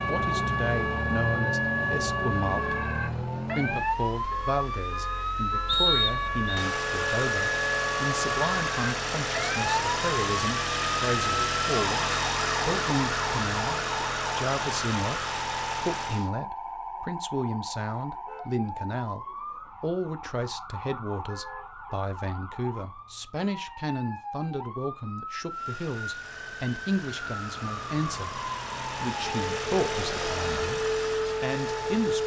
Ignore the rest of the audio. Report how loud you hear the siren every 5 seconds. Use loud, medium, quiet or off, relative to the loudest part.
loud, loud, loud, medium, medium, medium, loud.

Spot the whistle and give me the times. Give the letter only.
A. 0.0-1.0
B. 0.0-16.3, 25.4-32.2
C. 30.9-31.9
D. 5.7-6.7
D.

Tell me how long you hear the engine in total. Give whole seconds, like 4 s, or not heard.
23 s.